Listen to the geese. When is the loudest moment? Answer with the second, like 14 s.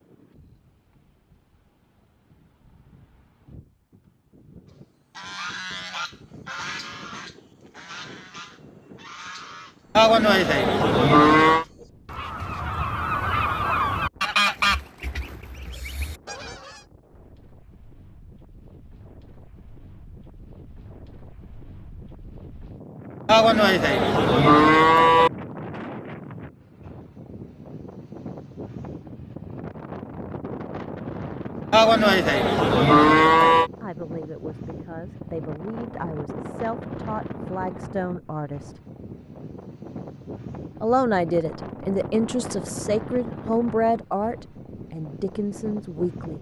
15 s.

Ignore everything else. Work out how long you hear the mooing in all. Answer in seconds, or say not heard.
6 s.